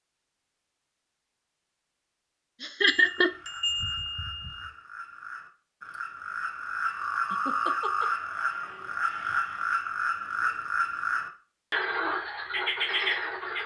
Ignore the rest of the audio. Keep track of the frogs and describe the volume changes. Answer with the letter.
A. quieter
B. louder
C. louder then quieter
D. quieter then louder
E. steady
B.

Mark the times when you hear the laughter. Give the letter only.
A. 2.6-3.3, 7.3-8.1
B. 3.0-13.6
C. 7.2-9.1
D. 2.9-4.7
A.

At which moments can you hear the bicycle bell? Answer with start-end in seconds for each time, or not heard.
2.9-4.7.